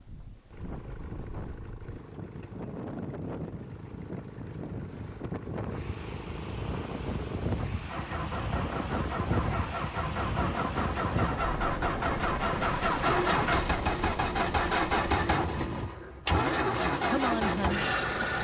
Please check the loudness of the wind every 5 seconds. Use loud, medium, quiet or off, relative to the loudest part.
medium, loud, loud, loud.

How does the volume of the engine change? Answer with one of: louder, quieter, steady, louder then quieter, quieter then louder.
louder.